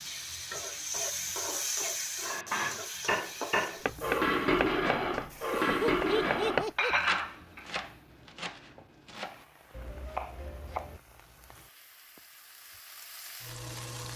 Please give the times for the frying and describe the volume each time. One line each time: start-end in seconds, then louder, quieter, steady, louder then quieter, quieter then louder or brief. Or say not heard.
0.0-14.1 quieter then louder.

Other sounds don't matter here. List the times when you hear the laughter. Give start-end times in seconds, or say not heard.
5.5-7.0.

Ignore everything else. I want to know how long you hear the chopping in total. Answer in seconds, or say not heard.
7 s.